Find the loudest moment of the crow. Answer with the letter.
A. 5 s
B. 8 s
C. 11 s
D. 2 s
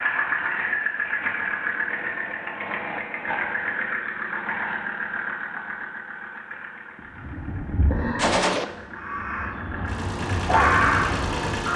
C.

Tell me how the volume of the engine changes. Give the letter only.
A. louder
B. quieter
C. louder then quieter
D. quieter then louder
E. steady
D.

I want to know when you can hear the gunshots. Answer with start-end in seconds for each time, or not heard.
8.2-8.7.